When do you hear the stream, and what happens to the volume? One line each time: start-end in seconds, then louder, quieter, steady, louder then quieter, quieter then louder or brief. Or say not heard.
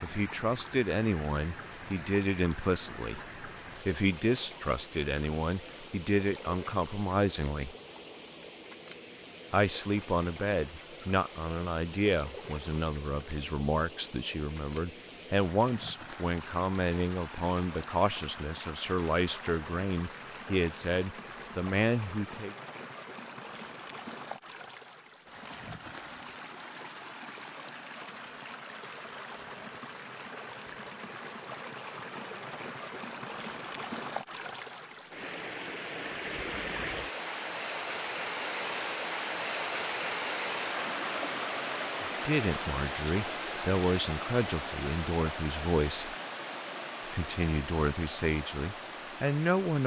0.0-49.8 louder.